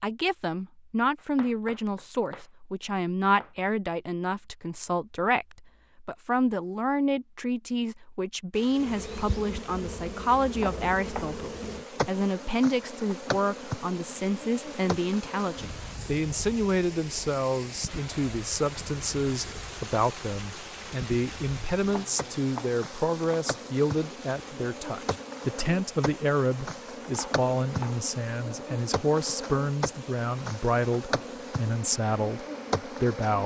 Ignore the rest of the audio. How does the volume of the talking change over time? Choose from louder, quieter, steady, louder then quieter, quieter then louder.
steady.